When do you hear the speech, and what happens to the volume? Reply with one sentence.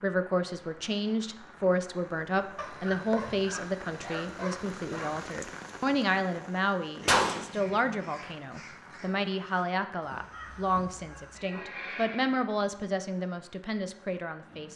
The speech can be heard from 0.0 to 14.7 s, at a steady volume.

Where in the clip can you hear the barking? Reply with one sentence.
You can hear the barking from 2.5 to 5.3 s.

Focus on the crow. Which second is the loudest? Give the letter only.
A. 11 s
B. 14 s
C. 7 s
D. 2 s
C.